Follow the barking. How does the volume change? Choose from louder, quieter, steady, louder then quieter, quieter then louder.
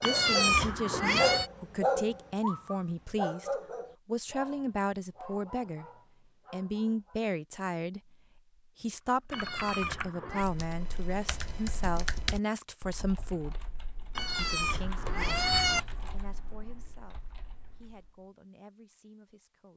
quieter.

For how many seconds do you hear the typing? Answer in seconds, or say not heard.
9 s.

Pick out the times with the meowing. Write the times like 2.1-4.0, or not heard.
0.0-1.5, 9.3-10.4, 14.2-15.8.